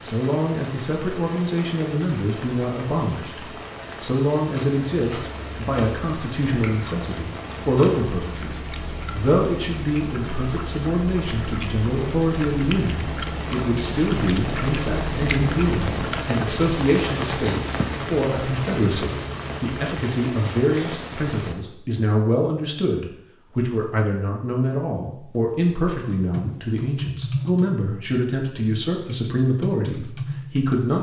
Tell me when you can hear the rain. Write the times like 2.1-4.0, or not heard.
0.0-21.6.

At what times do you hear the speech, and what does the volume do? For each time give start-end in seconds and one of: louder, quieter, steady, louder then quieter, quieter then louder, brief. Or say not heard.
0.0-30.9 steady.